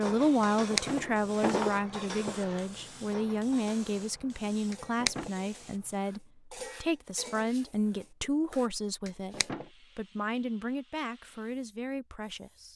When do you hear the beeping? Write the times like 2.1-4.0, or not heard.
not heard.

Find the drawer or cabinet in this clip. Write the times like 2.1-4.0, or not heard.
0.4-2.6, 4.7-5.3, 9.1-9.7.